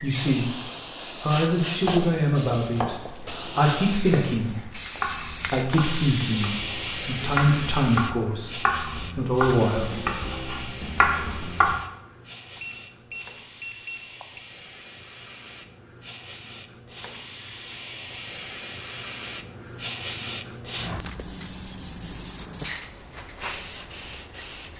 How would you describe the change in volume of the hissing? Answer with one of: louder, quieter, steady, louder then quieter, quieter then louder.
quieter then louder.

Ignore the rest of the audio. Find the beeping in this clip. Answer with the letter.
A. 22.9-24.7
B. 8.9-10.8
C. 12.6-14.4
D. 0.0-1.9
C.